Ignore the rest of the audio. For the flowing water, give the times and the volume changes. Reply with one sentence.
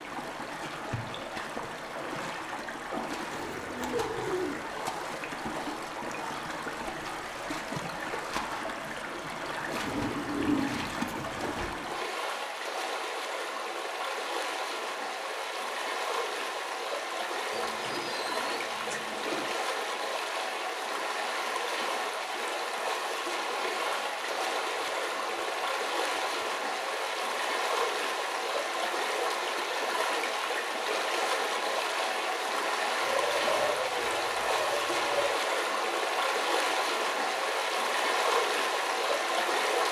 You can hear the flowing water from 0.0 to 39.8 s, getting louder.